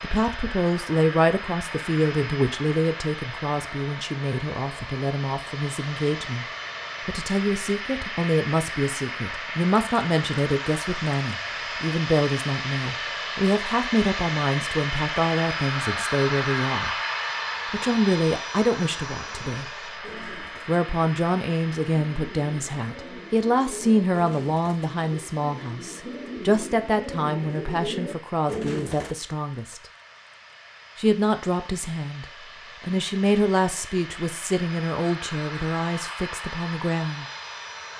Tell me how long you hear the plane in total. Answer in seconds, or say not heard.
38 s.